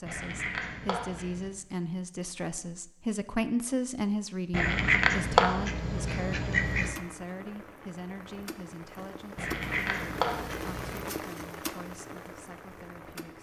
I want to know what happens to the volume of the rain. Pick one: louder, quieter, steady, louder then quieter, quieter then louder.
louder then quieter.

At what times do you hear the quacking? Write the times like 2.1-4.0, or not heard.
0.1-1.5, 4.5-7.0, 9.3-11.1.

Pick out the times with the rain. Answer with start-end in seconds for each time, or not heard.
6.8-13.3.